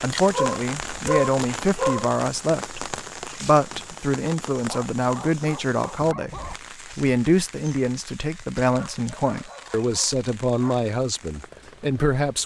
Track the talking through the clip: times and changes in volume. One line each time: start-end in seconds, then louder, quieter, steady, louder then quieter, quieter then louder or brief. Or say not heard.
0.0-12.4 steady.